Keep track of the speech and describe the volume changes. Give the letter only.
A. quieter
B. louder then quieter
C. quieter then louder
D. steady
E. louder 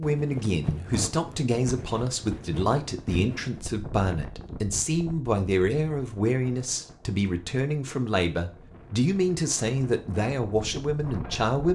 D.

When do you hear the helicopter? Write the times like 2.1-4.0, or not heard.
not heard.